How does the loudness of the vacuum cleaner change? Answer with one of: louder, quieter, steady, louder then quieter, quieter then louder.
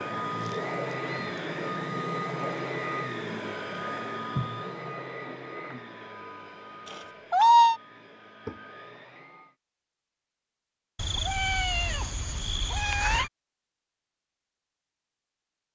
quieter.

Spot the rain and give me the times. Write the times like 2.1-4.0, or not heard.
not heard.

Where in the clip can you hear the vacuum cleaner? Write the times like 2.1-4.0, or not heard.
0.0-9.6.